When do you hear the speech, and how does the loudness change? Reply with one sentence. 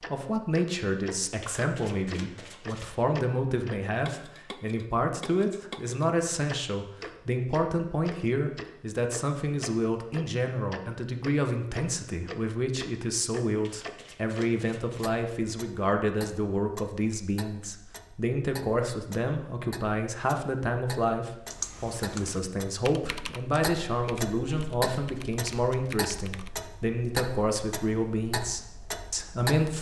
The speech can be heard from 0.0 to 29.7 s, at a steady volume.